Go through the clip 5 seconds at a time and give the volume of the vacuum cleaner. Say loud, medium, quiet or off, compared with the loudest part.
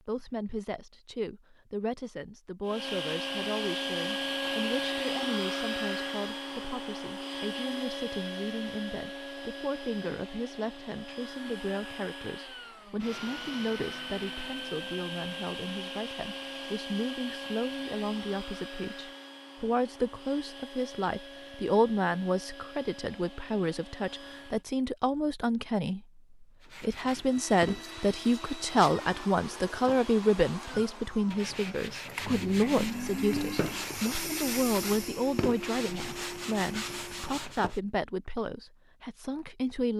loud, loud, medium, medium, quiet, medium, medium, medium.